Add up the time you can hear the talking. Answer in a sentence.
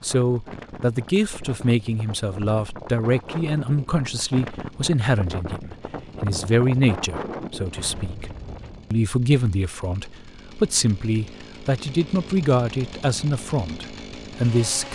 The talking can be heard for 14 seconds in total.